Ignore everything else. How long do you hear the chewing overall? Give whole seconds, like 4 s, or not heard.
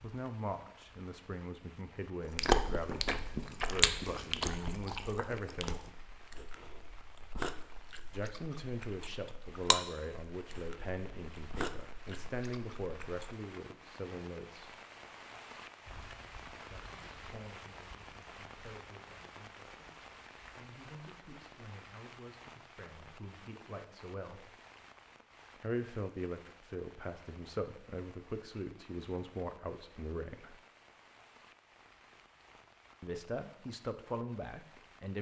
11 s.